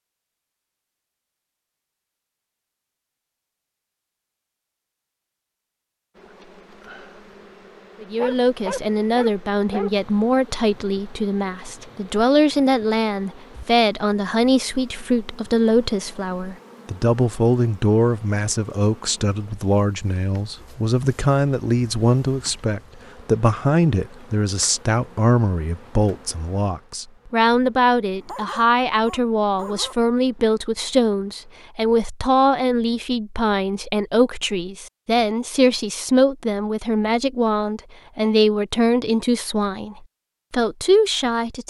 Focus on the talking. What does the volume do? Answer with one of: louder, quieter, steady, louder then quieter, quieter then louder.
steady.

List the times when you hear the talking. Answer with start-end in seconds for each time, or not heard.
8.0-41.6.